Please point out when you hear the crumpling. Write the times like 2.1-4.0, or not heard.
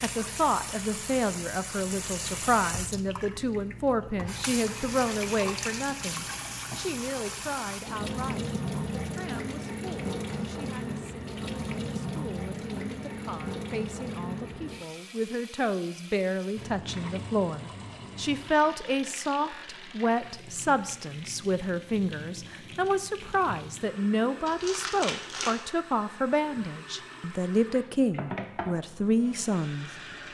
24.4-25.6.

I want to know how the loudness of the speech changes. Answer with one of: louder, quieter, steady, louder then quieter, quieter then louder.
quieter then louder.